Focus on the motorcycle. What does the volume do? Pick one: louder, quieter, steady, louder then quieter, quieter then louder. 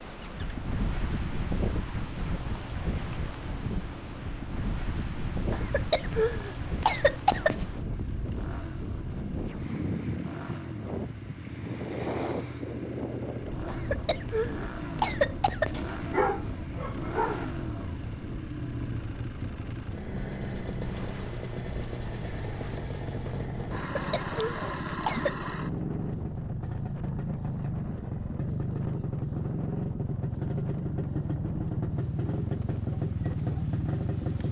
louder.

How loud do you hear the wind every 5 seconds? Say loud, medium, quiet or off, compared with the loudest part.
loud, loud, loud, medium, medium, medium, medium.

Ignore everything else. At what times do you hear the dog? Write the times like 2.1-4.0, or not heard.
15.7-17.4.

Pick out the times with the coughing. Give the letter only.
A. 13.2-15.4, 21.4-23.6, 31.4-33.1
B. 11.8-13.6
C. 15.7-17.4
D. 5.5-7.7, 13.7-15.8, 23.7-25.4
D.